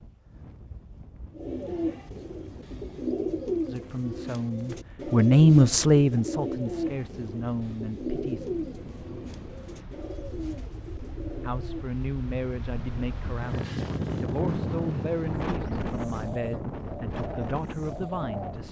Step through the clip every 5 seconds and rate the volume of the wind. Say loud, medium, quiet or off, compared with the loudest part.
quiet, medium, loud, loud.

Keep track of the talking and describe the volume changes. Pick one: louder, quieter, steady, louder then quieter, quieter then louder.
quieter.